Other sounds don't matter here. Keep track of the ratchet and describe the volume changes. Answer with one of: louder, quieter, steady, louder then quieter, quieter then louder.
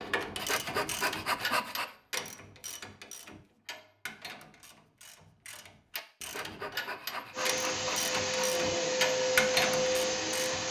quieter then louder.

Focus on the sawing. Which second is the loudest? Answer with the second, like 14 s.
1 s.